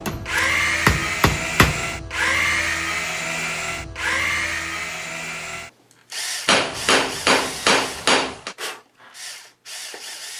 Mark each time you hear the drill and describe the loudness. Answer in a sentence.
You can hear the drill from 0.0 to 10.3 s, getting quieter.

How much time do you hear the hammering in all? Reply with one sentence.
The hammering can be heard for 4 seconds in total.